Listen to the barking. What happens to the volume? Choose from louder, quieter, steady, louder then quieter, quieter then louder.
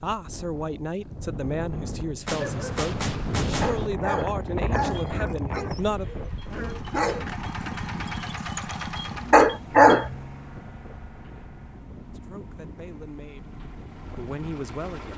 quieter then louder.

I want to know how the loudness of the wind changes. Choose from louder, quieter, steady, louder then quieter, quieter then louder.
louder then quieter.